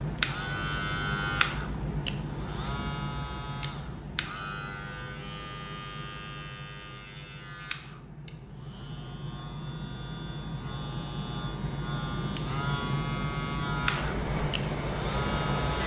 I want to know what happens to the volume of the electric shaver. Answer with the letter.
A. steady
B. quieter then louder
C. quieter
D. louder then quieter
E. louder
B.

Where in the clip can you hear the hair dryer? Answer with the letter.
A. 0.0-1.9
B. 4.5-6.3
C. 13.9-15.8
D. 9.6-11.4
C.